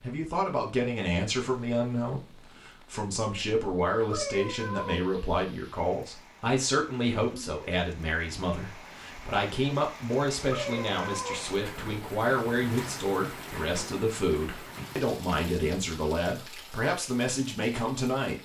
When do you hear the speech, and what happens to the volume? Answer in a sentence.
You can hear the speech from 0.0 to 18.4 s, at a steady volume.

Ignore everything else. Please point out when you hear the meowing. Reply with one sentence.
The meowing can be heard from 4.1 to 5.0 s and from 10.4 to 11.4 s.